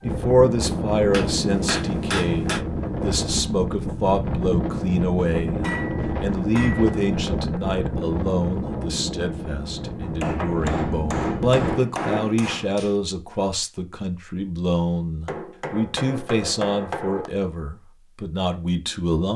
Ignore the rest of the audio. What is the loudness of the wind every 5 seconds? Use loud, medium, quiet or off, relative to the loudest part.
loud, loud, loud, off.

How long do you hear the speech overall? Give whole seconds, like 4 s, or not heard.
19 s.